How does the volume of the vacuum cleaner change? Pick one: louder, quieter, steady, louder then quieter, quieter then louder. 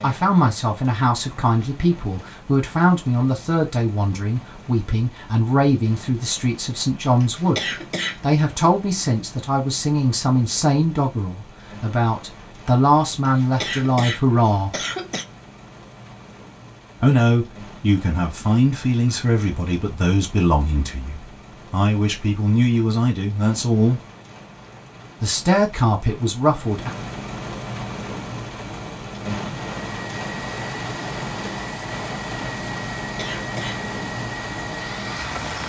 steady.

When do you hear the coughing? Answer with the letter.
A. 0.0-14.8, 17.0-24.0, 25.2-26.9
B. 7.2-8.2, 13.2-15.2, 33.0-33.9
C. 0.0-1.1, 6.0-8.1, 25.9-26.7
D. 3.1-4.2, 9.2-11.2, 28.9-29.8
B.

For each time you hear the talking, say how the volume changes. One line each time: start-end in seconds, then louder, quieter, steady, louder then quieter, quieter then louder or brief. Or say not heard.
0.0-14.8 steady
17.0-24.0 steady
25.2-26.9 brief.